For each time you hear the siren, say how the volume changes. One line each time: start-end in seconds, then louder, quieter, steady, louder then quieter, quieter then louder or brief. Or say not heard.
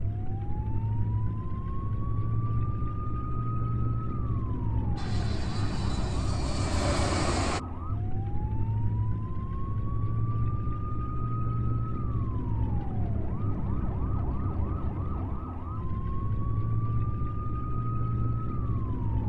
0.0-19.2 steady.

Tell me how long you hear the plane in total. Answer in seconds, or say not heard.
3 s.